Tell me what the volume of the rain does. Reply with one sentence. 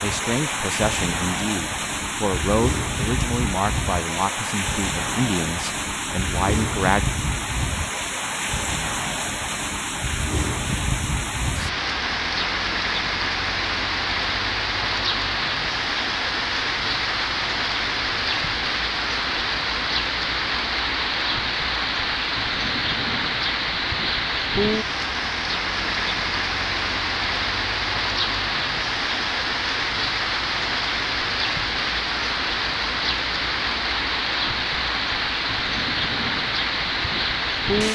The volume of the rain stays about the same.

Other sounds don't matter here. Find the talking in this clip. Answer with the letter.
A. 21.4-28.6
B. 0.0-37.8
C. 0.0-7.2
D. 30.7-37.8
C.